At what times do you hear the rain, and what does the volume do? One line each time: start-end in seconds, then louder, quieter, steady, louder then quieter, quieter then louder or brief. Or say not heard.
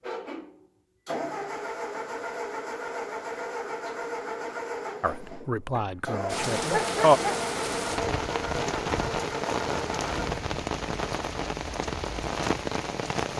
6.2-13.3 steady.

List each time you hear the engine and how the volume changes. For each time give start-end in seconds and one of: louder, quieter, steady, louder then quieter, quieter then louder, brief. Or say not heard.
0.0-10.4 steady.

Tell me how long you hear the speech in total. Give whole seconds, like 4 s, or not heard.
2 s.